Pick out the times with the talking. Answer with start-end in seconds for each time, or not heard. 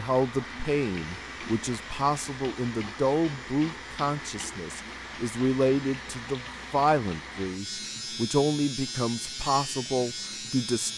0.0-10.9.